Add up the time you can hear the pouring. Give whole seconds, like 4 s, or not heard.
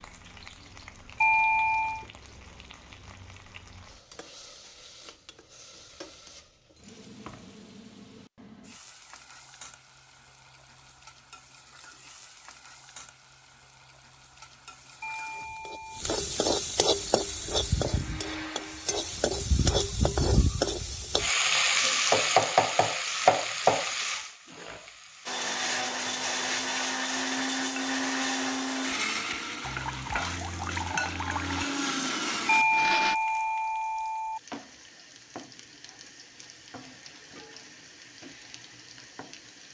2 s.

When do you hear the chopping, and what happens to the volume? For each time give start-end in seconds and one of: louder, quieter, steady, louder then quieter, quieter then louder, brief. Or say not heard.
not heard.